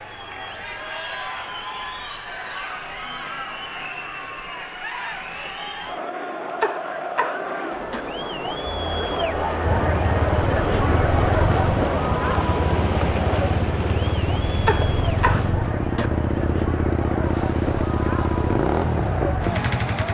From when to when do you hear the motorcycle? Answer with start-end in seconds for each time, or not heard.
9.7-20.0.